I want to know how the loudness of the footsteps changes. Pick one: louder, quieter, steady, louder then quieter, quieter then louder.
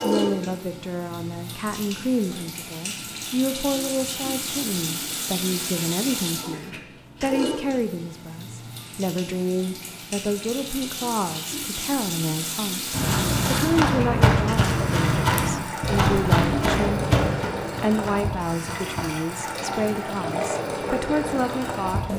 quieter.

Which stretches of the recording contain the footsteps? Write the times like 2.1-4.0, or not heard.
12.9-19.2.